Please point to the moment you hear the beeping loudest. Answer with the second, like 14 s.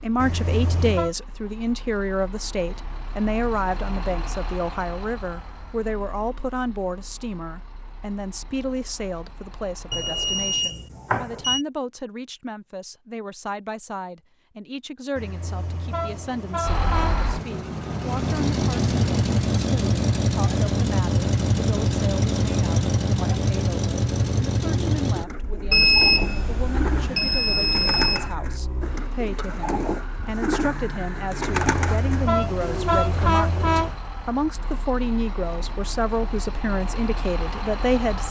26 s.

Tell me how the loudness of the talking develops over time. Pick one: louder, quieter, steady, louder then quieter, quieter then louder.
quieter then louder.